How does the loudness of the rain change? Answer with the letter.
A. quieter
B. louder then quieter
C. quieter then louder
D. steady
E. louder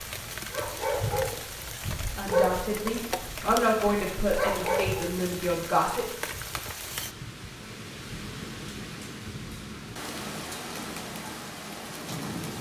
D.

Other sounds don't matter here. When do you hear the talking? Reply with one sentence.
You can hear the talking from 2.1 to 6.0 s.